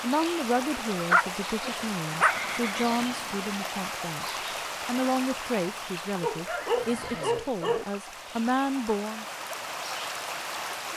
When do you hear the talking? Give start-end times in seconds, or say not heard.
0.0-4.2, 4.8-9.2.